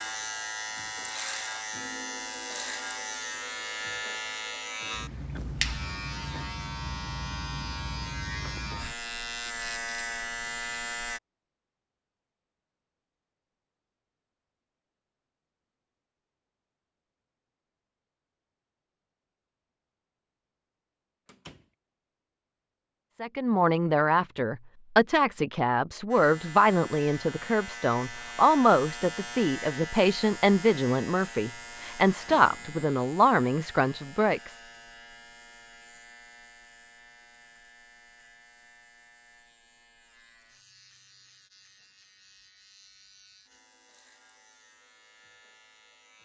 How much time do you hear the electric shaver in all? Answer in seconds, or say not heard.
31 s.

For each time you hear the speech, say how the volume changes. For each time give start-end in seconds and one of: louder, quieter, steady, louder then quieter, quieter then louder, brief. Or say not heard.
23.2-34.5 steady.